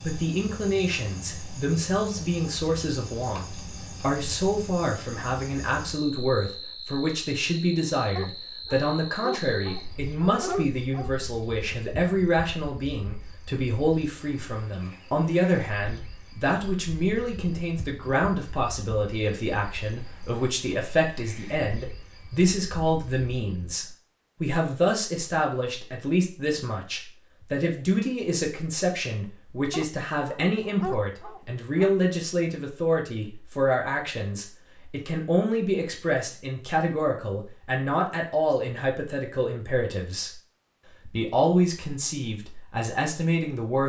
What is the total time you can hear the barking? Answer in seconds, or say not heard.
5 s.